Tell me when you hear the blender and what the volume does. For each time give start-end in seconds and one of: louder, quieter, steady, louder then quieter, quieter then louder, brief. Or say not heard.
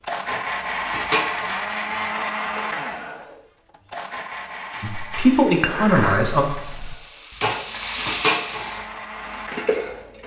0.0-10.2 quieter then louder.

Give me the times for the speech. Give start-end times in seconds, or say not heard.
4.8-6.5.